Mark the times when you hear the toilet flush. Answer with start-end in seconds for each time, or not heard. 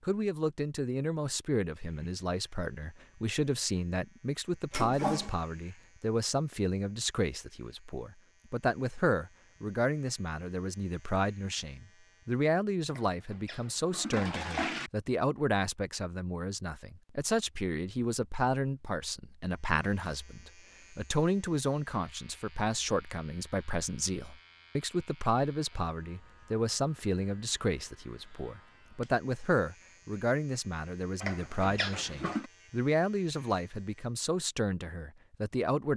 4.7-5.3, 12.9-14.9, 31.2-32.5.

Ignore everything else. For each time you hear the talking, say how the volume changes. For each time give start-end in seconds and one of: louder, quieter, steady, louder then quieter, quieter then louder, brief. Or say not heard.
0.0-35.9 steady.